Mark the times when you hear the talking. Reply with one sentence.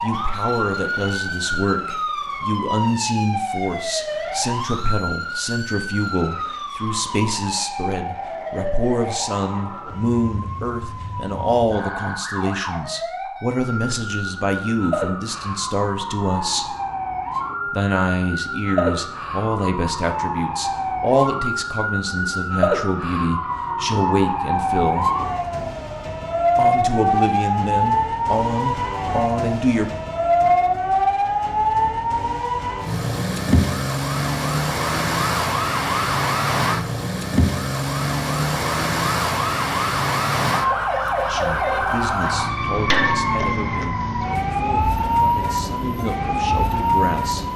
The talking can be heard from 0.0 to 16.8 s, from 17.7 to 25.1 s, from 26.6 to 29.9 s and from 41.3 to 47.5 s.